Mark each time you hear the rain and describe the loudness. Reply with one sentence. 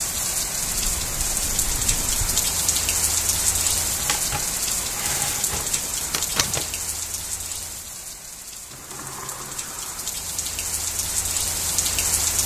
The rain can be heard from 0.0 to 12.4 s, getting quieter then louder.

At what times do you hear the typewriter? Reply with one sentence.
The typewriter can be heard from 4.0 to 6.7 s.